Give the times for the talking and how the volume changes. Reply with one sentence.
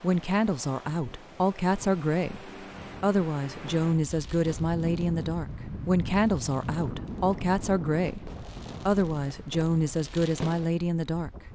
You can hear the talking from 0.0 to 11.3 s, at a steady volume.